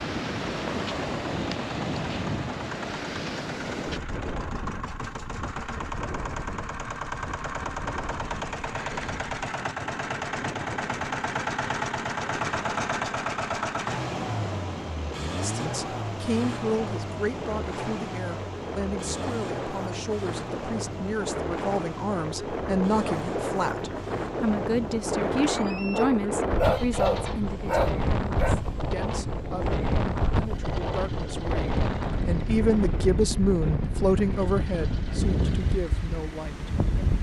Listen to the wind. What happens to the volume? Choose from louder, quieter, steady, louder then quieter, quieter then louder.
quieter then louder.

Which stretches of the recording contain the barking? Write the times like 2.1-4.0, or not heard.
25.9-28.6.